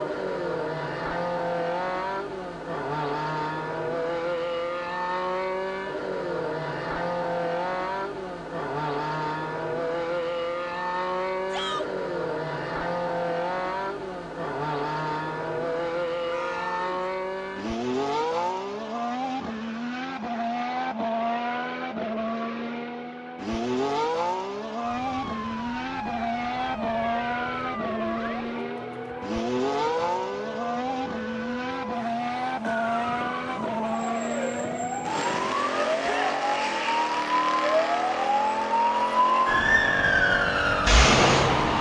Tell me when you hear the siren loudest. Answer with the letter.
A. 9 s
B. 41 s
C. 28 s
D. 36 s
B.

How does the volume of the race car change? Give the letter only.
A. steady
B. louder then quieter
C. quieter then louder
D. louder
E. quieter
A.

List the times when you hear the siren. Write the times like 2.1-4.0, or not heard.
24.8-41.7.